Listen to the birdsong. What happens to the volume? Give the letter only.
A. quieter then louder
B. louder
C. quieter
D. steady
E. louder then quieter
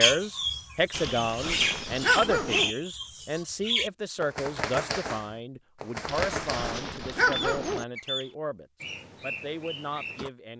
C.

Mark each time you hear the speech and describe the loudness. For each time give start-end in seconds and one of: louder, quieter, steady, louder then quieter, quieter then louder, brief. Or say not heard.
0.0-10.5 quieter.